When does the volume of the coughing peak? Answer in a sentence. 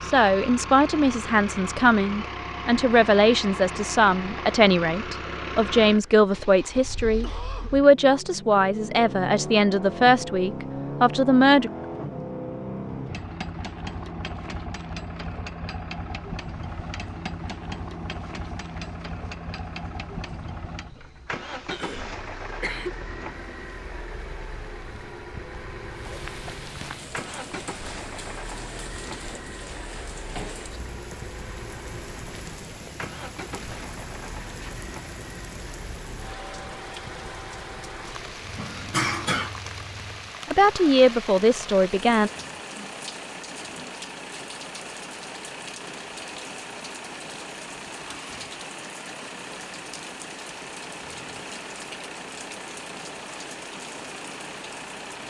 The loudest moment of the coughing is at 39 seconds.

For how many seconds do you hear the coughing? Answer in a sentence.
You can hear the coughing for 3 seconds altogether.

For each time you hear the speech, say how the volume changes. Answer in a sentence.
The speech can be heard from 0.0 to 11.7 s, at a steady volume; and briefly from 40.5 to 42.3 s.